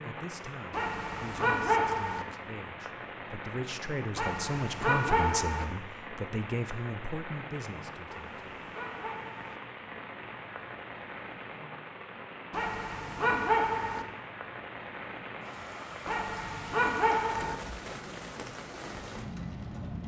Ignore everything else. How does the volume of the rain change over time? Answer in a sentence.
The volume of the rain stays about the same.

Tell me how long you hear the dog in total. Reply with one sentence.
The dog can be heard for 8 seconds in total.